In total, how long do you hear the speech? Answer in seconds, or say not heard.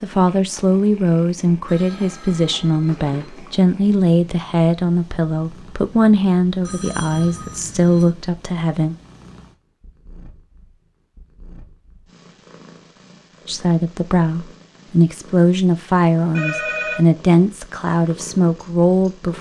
15 s.